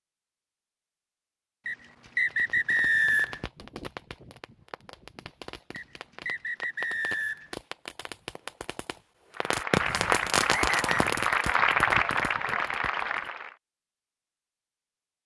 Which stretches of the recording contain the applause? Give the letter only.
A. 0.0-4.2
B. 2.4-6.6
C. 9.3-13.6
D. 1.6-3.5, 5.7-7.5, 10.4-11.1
C.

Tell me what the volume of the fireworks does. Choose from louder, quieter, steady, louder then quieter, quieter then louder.
louder then quieter.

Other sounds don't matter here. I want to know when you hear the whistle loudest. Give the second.
3 s.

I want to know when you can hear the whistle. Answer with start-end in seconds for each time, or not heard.
1.6-3.5, 5.7-7.5, 10.4-11.1.